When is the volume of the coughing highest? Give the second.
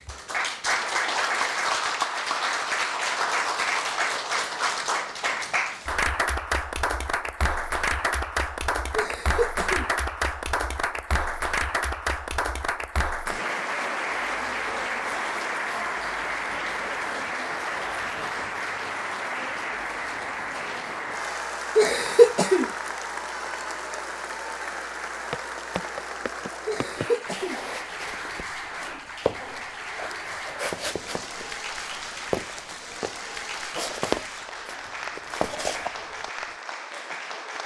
22 s.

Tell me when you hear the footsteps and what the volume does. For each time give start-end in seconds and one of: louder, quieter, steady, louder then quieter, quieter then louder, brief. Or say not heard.
25.3-36.5 louder.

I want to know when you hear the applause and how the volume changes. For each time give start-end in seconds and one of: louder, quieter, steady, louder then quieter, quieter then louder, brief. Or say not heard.
0.0-37.6 quieter.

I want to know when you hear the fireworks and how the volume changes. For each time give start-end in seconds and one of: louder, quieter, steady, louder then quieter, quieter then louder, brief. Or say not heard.
not heard.